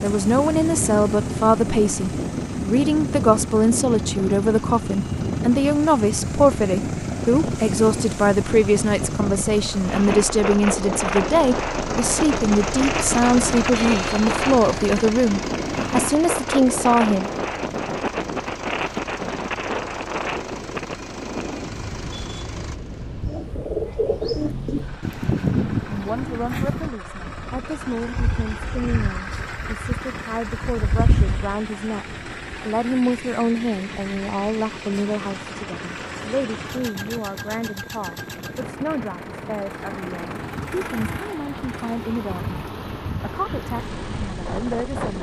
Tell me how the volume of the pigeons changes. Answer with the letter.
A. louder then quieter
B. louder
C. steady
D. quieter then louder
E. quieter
D.